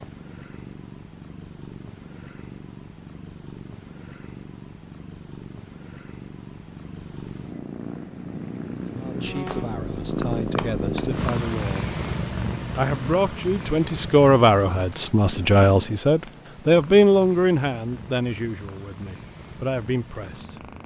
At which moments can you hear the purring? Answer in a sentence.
The purring can be heard from 0.0 to 20.8 s.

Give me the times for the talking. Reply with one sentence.
You can hear the talking from 8.9 to 11.9 s and from 12.8 to 20.7 s.